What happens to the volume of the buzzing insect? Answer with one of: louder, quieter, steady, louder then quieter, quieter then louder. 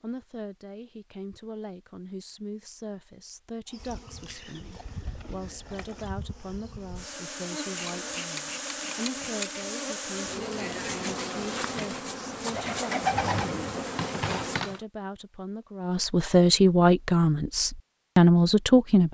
louder.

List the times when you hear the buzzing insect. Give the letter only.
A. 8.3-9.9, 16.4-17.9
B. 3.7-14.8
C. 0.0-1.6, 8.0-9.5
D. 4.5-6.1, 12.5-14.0
B.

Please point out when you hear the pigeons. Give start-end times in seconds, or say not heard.
4.5-6.1, 12.5-14.0.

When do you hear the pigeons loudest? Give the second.
13 s.